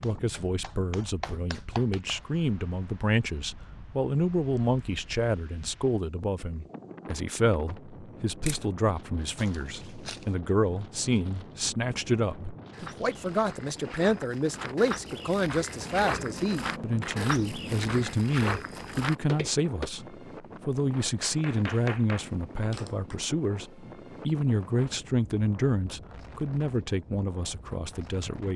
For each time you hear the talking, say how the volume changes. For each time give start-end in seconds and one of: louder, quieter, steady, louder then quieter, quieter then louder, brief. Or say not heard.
0.0-28.5 steady.